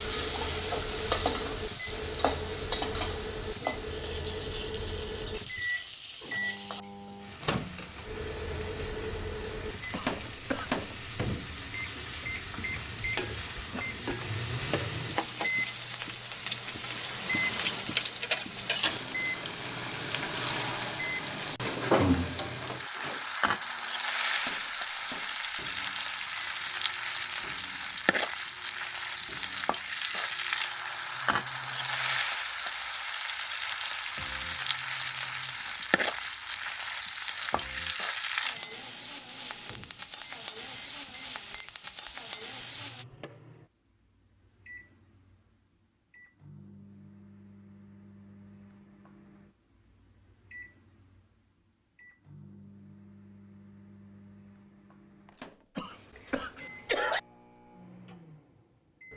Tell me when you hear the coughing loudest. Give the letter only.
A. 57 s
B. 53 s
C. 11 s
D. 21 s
A.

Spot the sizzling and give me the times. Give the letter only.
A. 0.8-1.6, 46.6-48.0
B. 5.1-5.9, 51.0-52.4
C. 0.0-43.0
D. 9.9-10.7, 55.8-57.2
C.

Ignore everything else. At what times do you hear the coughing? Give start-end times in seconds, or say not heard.
9.9-10.7, 55.8-57.2.